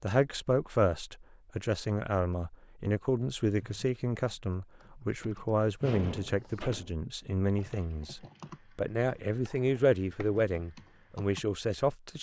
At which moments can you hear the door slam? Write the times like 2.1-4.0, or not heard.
5.8-7.0.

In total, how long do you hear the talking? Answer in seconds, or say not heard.
12 s.